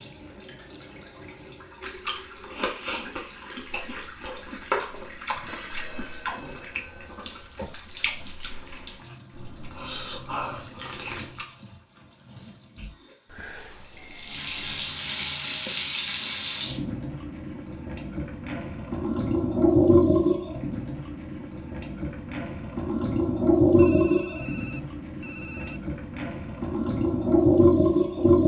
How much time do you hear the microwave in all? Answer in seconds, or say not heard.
not heard.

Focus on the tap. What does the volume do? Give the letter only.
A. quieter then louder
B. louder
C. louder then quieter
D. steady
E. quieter
B.